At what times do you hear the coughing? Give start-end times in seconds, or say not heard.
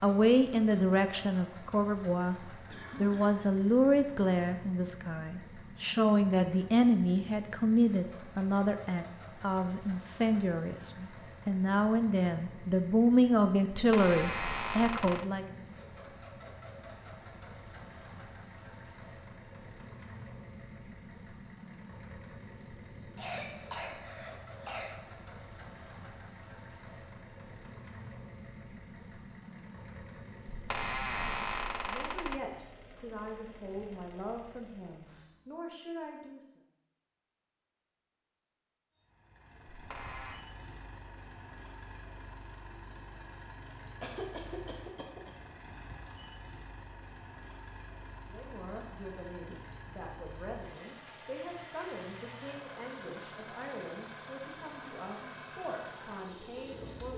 2.7-3.4, 23.1-24.9, 44.0-45.3.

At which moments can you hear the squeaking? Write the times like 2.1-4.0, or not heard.
13.7-15.2, 30.5-32.4, 39.7-40.4.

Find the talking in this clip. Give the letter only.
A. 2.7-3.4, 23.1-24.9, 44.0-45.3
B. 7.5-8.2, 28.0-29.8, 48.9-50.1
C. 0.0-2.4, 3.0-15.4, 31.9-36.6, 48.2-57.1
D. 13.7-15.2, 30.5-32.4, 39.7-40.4
C.